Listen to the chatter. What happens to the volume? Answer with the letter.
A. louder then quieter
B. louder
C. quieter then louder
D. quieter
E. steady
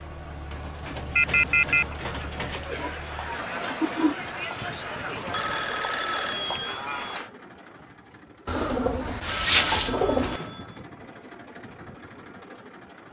B.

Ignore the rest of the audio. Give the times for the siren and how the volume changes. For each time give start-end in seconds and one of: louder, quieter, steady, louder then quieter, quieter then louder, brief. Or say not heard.
not heard.